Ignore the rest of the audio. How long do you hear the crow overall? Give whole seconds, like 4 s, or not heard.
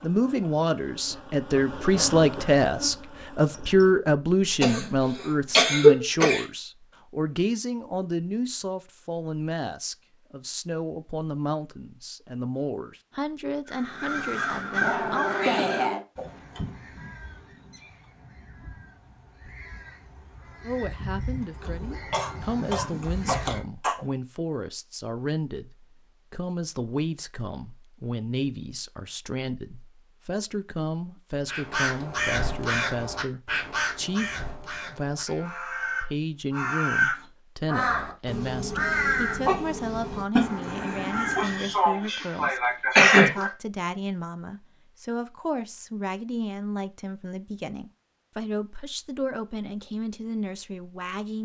21 s.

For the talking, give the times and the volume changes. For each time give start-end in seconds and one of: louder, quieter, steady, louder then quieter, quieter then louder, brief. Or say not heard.
0.0-15.3 quieter
20.6-51.3 steady.